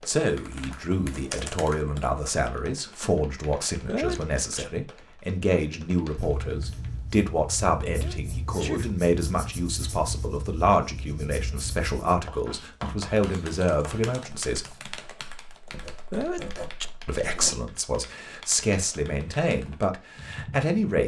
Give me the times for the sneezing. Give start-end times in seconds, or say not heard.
3.9-4.7, 7.9-8.9, 16.1-16.9.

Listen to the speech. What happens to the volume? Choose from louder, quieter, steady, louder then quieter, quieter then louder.
steady.